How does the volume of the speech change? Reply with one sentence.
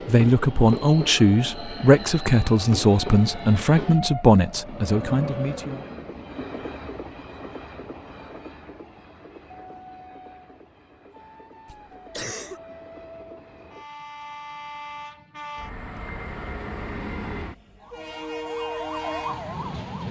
The volume of the speech goes down.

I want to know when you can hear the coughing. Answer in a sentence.
The coughing can be heard from 11.7 to 12.6 s.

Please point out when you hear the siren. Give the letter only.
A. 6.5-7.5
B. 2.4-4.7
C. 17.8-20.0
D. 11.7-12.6
C.